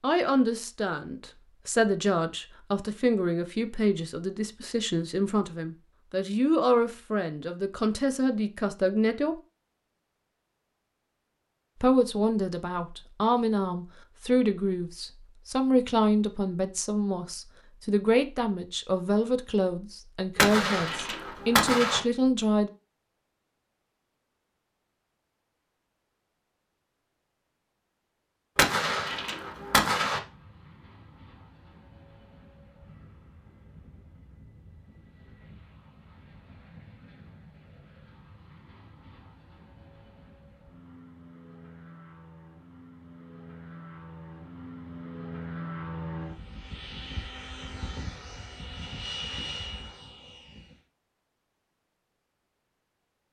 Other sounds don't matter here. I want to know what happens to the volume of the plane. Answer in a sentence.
The volume of the plane goes up.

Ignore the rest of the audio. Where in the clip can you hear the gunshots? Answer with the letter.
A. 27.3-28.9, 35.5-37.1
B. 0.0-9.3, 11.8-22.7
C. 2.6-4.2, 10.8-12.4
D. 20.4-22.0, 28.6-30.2
D.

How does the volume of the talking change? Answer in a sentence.
The volume of the talking stays about the same.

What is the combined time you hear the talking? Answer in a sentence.
The talking can be heard for 20 seconds in total.